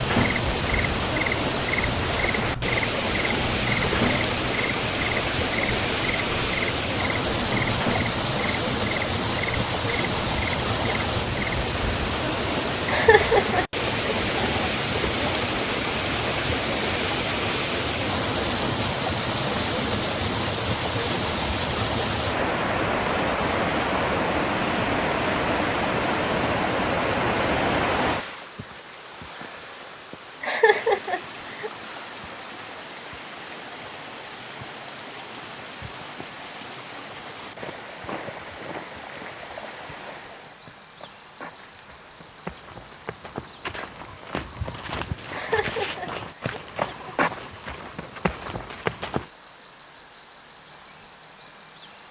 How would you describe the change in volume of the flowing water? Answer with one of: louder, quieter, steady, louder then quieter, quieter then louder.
quieter.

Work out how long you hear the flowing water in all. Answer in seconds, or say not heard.
41 s.